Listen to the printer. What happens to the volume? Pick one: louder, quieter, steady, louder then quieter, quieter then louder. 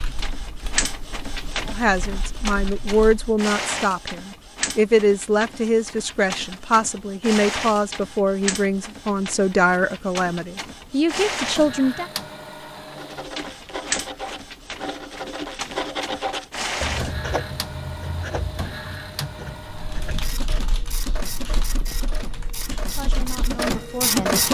steady.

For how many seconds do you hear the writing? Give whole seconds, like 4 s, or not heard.
7 s.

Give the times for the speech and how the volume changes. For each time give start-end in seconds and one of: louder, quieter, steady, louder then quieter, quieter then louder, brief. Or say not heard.
1.6-12.1 steady
22.9-24.4 brief.